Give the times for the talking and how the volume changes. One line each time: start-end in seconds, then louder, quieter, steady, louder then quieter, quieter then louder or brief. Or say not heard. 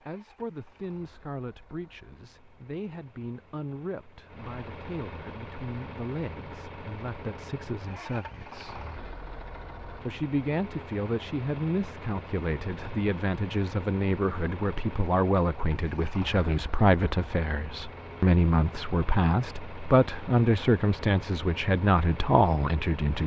0.1-8.8 steady
10.0-23.2 louder.